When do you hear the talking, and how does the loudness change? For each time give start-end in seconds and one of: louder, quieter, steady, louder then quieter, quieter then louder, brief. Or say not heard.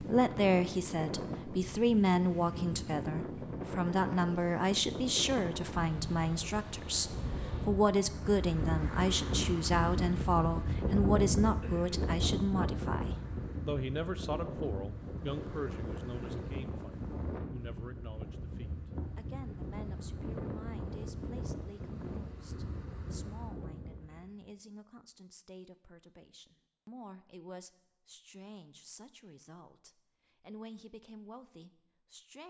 0.0-32.4 quieter.